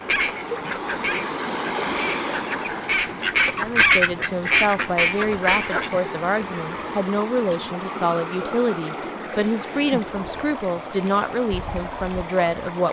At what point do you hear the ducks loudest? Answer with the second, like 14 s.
4 s.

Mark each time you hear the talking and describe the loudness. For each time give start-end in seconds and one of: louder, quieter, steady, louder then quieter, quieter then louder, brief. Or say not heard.
3.5-12.8 steady.